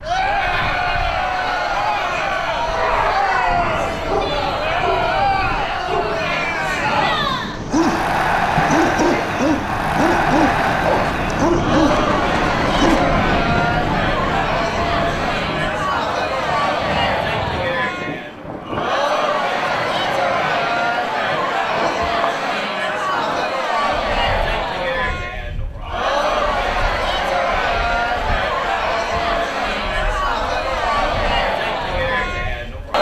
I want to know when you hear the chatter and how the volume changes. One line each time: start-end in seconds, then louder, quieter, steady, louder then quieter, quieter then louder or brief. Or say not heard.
0.0-32.9 steady.